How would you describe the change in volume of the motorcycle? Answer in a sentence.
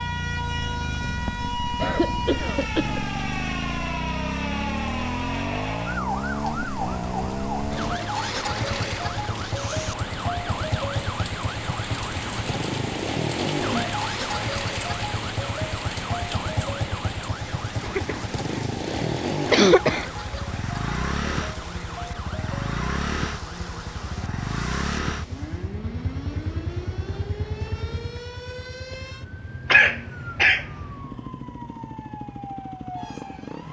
The loudness of the motorcycle goes down.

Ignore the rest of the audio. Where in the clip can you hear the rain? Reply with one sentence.
The rain can be heard from 0.0 to 25.8 s.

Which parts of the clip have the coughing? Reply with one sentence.
You can hear the coughing from 1.8 to 3.0 s, from 17.8 to 20.1 s and from 29.7 to 30.6 s.